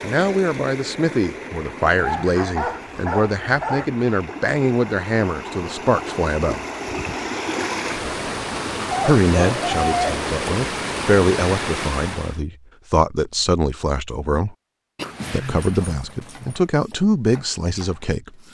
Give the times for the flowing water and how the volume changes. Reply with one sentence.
You can hear the flowing water from 0.0 to 12.4 s, getting louder.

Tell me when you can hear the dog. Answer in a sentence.
The dog can be heard from 1.9 to 3.9 s, from 8.8 to 10.2 s and from 14.9 to 16.6 s.